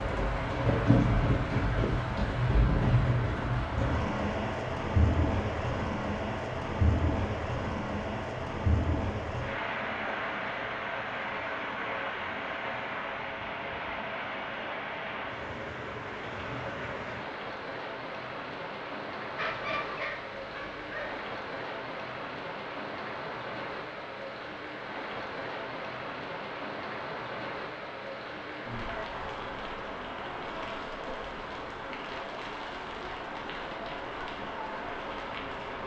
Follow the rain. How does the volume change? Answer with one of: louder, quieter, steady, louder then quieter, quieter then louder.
quieter.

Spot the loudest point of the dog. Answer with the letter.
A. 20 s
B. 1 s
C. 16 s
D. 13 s
A.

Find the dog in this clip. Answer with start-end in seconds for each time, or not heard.
19.4-21.2.